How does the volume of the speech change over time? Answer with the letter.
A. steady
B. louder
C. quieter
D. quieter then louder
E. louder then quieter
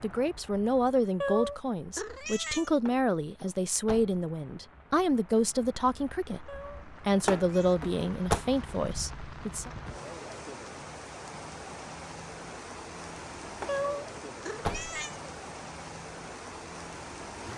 A.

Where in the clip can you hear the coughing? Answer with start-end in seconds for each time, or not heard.
not heard.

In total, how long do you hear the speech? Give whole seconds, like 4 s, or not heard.
10 s.